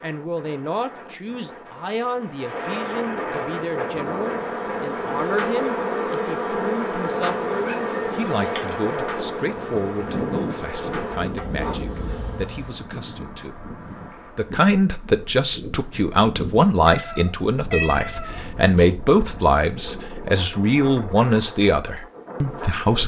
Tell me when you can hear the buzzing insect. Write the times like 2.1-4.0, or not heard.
3.3-12.8.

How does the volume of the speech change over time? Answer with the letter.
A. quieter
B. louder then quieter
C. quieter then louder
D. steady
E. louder
E.